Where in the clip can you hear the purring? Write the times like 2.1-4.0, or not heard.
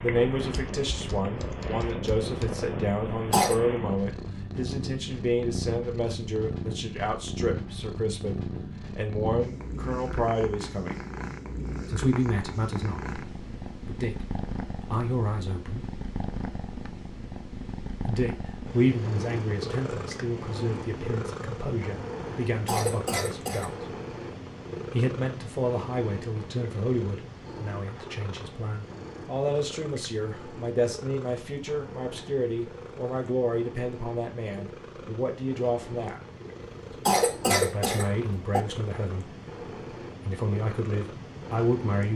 0.0-42.1.